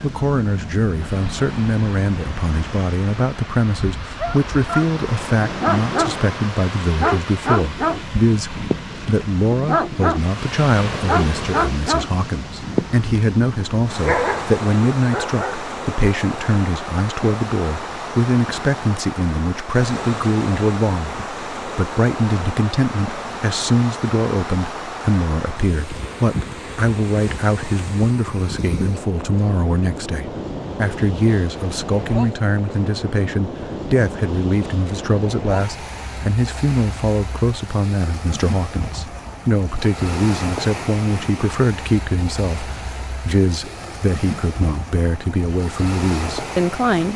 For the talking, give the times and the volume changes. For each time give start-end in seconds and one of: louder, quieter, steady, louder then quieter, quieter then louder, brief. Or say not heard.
0.0-47.1 steady.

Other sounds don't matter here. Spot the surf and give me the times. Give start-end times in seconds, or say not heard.
0.0-47.1.